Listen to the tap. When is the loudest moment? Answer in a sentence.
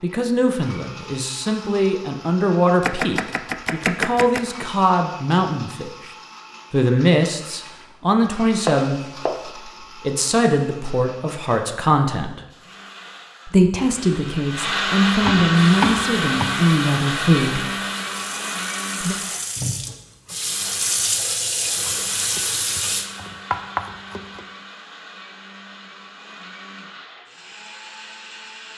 The volume of the tap peaks at 21 seconds.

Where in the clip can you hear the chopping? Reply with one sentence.
You can hear the chopping from 2.8 to 4.4 s, from 8.7 to 9.5 s, from 15.2 to 16.6 s and from 21.9 to 24.4 s.